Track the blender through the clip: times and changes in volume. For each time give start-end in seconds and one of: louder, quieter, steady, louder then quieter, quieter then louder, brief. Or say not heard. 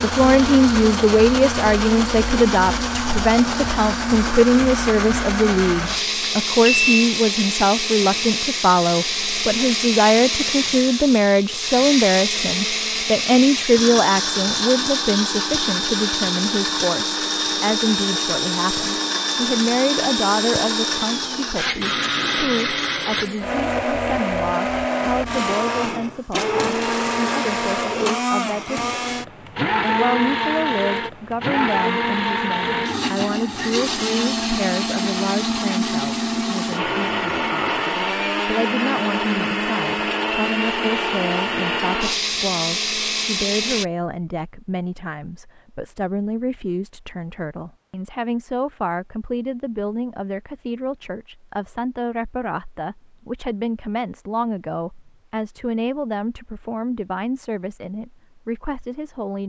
0.0-43.9 steady.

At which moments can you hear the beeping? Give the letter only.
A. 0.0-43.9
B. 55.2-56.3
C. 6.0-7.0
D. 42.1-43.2
C.